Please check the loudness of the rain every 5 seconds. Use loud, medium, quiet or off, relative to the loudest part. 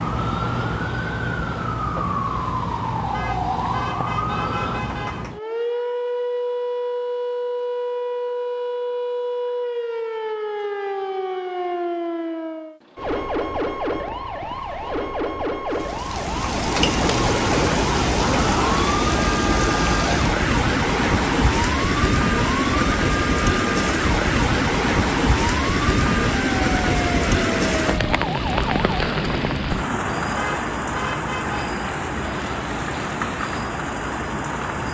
off, off, off, loud, loud, loud, medium.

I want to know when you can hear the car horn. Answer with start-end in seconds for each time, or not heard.
3.1-5.2, 30.4-31.7.